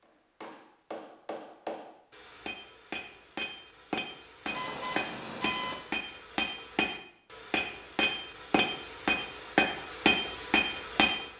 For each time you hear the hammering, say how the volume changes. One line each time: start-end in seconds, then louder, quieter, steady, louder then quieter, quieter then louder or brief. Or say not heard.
0.0-11.3 louder.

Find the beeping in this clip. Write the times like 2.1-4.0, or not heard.
4.5-5.8.